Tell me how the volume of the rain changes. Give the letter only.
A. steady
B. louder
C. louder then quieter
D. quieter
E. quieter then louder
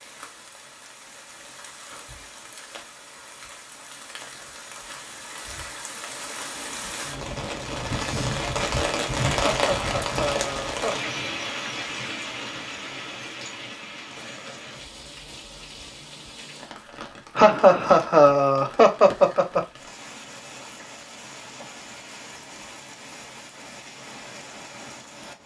C.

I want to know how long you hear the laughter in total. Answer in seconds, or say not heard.
4 s.